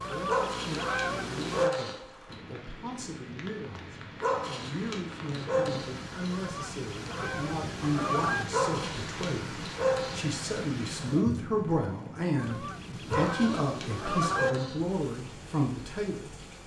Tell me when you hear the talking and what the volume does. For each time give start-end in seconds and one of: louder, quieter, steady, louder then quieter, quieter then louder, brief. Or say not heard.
0.0-16.4 louder.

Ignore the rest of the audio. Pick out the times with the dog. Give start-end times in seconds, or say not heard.
0.2-2.4, 4.2-6.3, 8.5-10.3, 13.1-15.1.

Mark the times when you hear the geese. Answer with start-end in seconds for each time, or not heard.
0.0-1.7, 6.3-8.4, 12.3-14.5.